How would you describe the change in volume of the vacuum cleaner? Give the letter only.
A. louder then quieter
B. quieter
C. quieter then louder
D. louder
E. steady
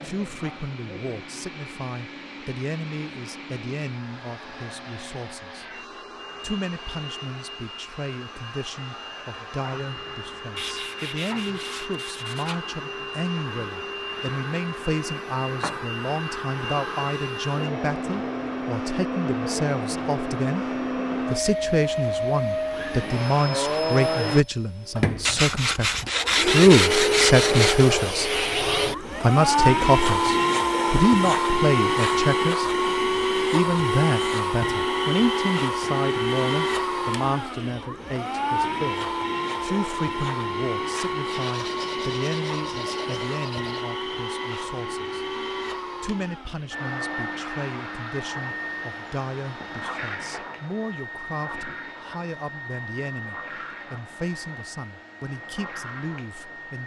A.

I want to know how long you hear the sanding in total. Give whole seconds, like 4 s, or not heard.
7 s.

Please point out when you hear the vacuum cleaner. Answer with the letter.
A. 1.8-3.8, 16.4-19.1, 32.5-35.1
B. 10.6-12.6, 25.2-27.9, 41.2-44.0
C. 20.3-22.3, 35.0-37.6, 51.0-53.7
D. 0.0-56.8
D.